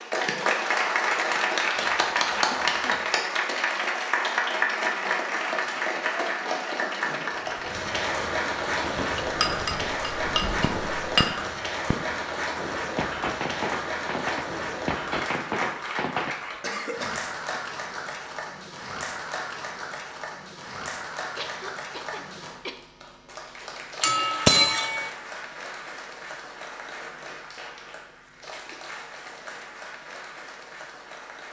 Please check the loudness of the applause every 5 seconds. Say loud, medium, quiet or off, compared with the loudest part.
loud, loud, medium, medium, quiet, quiet, quiet.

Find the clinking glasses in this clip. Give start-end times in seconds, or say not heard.
9.2-11.4, 24.0-25.1.